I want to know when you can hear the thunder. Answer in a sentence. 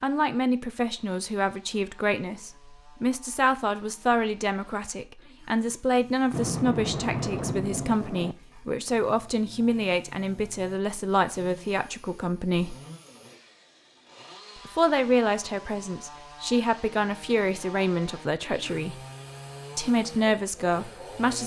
You can hear the thunder from 6.3 to 8.3 s.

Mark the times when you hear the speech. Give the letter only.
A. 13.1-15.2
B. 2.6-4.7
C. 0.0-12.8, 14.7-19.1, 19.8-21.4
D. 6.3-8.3
C.